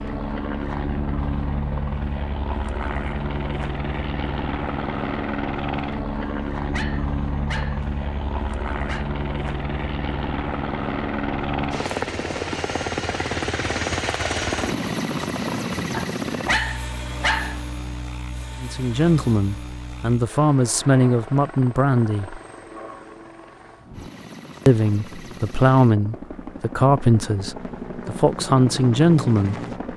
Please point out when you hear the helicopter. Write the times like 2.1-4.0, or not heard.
0.0-29.9.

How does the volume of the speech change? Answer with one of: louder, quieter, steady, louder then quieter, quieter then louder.
steady.